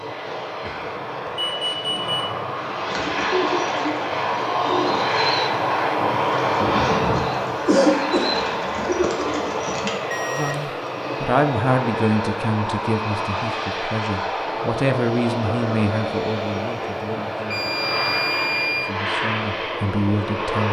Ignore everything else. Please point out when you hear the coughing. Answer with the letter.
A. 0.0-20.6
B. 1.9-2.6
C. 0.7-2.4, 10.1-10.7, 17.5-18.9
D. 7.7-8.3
D.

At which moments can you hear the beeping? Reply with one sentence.
The beeping can be heard from 0.7 to 2.4 s, from 10.1 to 10.7 s and from 17.5 to 18.9 s.